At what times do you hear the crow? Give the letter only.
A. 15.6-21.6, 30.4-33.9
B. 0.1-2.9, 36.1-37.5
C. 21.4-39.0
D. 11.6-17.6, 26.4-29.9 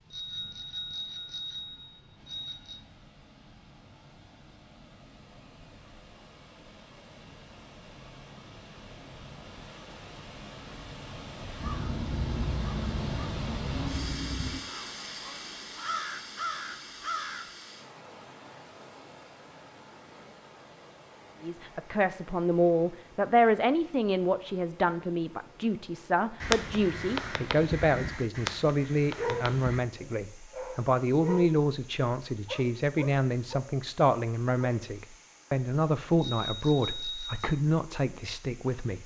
D.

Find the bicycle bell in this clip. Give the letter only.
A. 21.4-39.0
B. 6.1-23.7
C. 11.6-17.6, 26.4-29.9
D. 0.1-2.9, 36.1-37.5
D.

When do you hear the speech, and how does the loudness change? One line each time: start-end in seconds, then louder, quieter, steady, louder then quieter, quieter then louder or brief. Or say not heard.
21.4-39.0 steady.